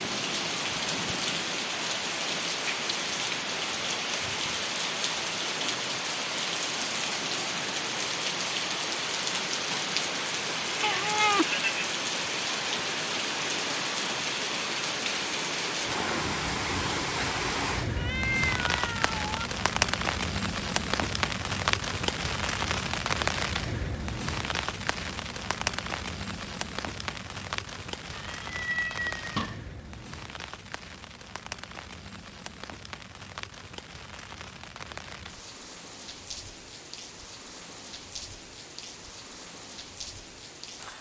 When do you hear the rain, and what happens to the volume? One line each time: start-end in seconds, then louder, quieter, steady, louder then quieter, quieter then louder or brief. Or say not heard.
0.0-40.9 quieter.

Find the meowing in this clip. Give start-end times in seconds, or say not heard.
10.8-11.9, 17.9-19.2, 28.1-29.6.